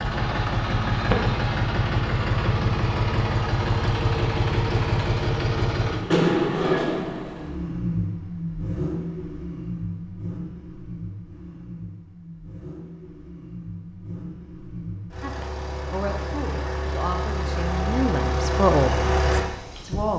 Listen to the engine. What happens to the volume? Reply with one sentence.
The loudness of the engine goes down, then up.